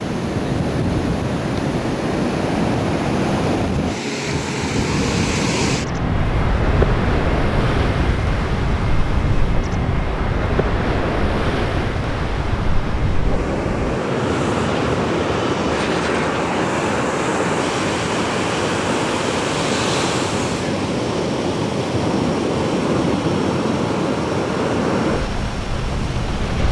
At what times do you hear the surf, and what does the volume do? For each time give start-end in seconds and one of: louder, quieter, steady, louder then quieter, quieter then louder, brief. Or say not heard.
0.0-26.6 steady.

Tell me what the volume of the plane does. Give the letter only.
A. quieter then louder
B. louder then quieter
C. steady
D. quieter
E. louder
D.